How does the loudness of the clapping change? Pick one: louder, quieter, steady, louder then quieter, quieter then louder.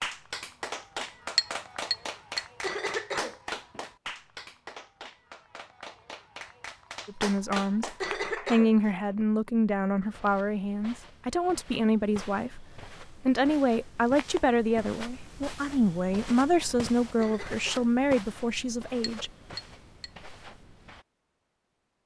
quieter then louder.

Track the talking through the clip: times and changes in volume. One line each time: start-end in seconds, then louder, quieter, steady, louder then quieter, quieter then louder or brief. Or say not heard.
7.0-19.3 steady.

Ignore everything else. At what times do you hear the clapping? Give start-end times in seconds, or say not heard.
0.0-8.5.